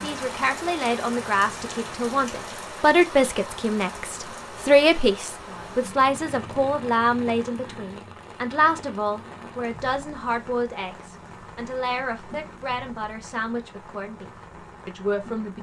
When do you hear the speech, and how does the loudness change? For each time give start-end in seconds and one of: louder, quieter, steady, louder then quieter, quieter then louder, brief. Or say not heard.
0.0-15.5 quieter.